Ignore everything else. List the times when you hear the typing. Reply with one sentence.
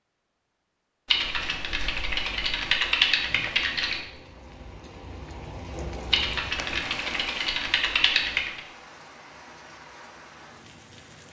You can hear the typing from 1.1 to 4.0 s and from 6.1 to 8.6 s.